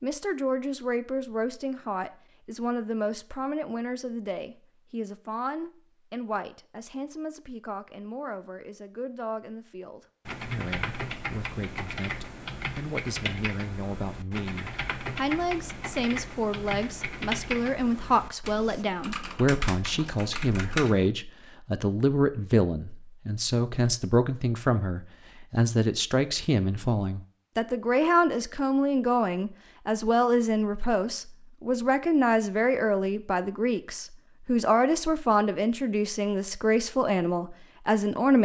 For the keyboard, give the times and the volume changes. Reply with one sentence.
The keyboard can be heard from 10.2 to 21.1 s, at a steady volume.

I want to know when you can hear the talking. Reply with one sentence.
The talking can be heard from 0.0 to 38.4 s.